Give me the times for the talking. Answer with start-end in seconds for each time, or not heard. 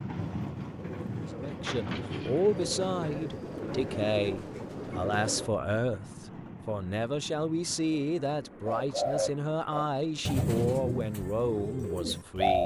1.3-12.6.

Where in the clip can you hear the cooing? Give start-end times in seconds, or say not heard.
0.1-5.5, 8.7-12.6.